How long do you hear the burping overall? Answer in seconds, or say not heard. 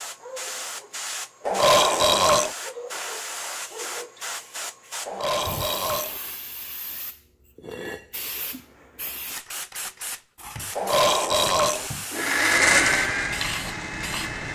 3 s.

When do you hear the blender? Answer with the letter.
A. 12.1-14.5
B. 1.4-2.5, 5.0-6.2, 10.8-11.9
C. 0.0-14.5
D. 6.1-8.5
A.